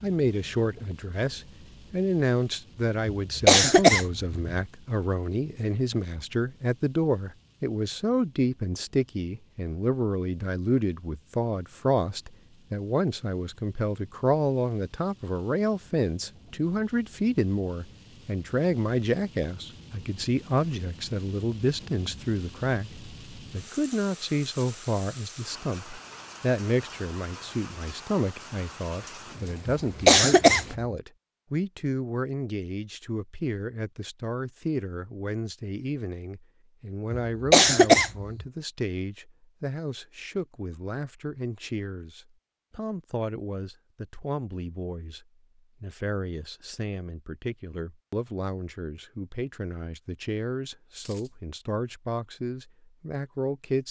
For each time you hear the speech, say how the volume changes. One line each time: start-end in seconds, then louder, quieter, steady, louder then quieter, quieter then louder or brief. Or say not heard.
0.0-53.8 quieter.